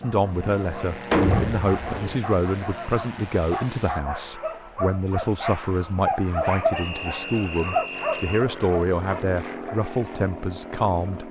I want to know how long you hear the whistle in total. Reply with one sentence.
You can hear the whistle for 2 seconds altogether.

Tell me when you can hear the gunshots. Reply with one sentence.
You can hear the gunshots from 1.1 to 2.2 s.